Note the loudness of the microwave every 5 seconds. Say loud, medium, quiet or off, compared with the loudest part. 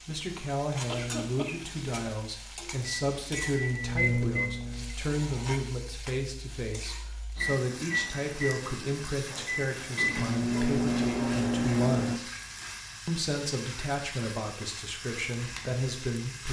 loud, medium, loud, off.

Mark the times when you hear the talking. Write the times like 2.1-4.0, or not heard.
0.1-12.3, 13.1-16.4.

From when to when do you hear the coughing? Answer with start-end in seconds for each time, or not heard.
0.8-2.0.